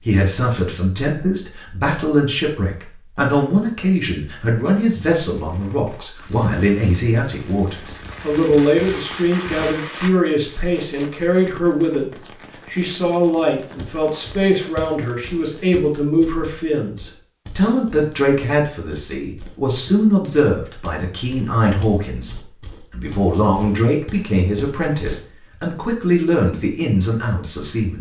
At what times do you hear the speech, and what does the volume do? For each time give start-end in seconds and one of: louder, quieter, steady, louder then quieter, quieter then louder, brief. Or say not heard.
0.1-27.9 steady.